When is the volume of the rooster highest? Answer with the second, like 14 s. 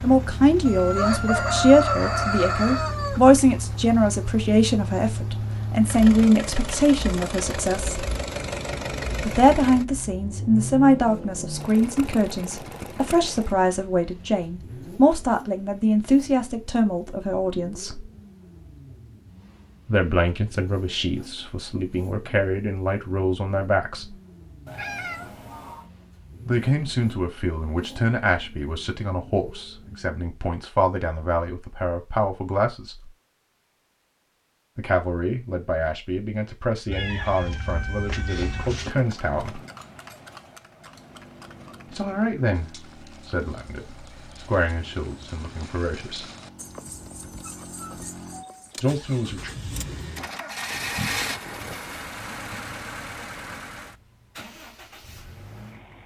2 s.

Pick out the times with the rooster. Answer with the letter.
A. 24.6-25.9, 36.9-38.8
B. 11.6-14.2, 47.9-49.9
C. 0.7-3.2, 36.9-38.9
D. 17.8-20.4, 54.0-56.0
C.